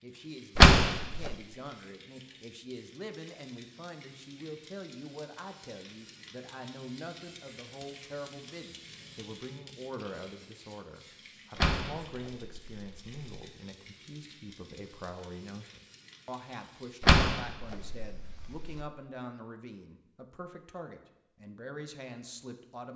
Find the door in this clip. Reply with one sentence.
The door can be heard from 0.6 to 1.4 s, from 11.6 to 13.2 s and from 17.0 to 18.9 s.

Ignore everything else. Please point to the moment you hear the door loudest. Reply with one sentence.
The volume of the door peaks at 1 second.